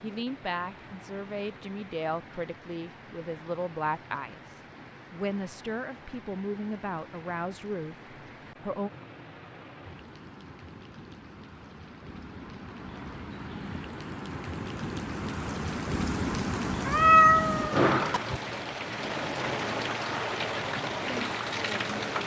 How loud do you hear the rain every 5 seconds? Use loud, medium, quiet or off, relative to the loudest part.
quiet, quiet, medium, loud, loud.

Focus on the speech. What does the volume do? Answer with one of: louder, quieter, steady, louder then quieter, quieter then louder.
steady.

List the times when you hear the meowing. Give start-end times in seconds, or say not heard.
16.9-18.4.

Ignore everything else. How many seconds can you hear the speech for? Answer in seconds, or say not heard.
9 s.